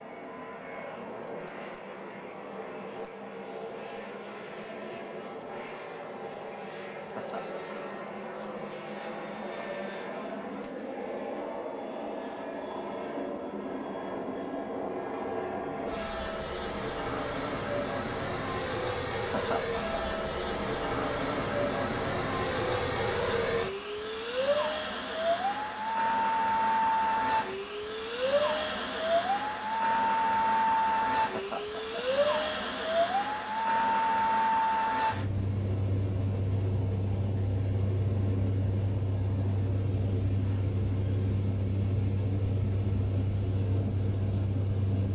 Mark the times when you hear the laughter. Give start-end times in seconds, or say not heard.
7.0-7.6, 19.1-20.0, 31.1-32.0.